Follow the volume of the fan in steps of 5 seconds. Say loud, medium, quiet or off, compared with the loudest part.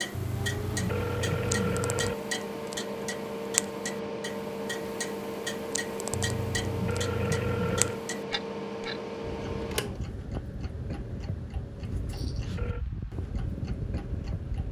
loud, loud, medium.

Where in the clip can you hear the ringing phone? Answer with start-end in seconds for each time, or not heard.
0.1-2.1, 6.1-8.0, 11.8-12.8.